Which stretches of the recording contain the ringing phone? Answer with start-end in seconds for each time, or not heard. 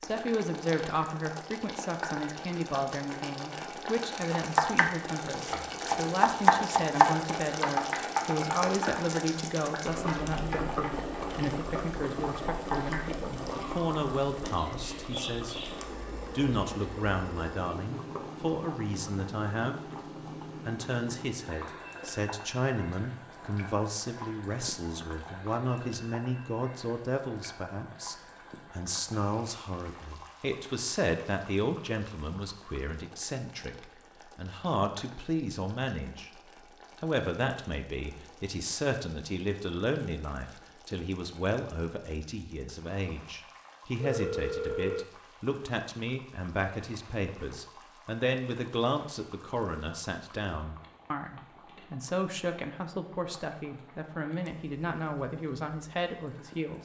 44.0-45.0.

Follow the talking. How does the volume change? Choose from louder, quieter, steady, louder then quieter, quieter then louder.
steady.